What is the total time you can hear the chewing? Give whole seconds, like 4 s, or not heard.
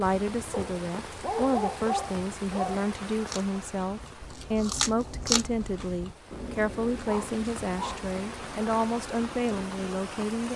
7 s.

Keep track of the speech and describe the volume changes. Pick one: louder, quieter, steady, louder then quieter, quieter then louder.
steady.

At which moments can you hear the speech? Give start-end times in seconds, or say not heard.
0.0-10.5.